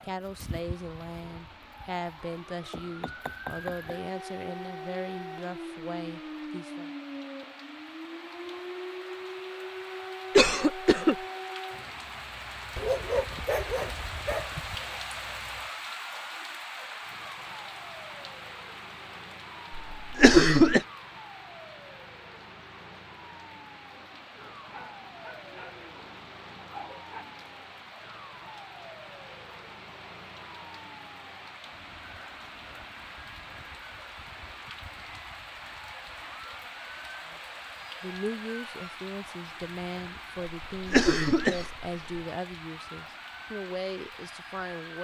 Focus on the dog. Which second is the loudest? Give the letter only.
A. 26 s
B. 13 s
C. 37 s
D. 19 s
B.